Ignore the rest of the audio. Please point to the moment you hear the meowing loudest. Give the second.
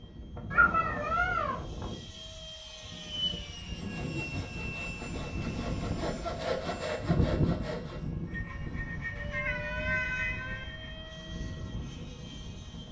1 s.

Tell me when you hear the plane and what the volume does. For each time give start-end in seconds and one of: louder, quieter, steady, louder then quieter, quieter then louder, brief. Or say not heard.
0.0-12.8 louder then quieter.